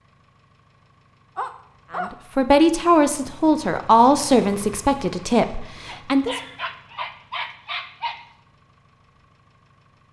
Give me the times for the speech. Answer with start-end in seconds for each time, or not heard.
1.9-6.4.